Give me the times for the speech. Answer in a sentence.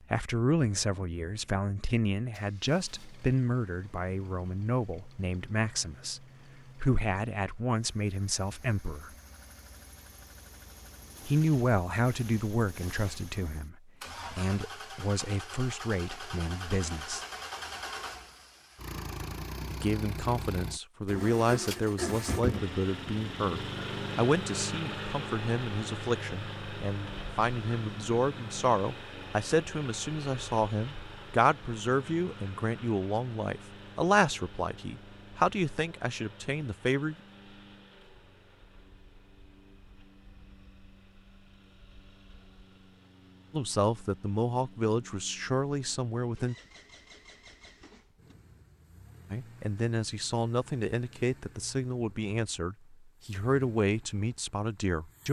The speech can be heard from 0.1 to 9.1 s, from 11.2 to 17.2 s, from 19.7 to 37.1 s, from 43.5 to 46.5 s and from 49.3 to 55.2 s.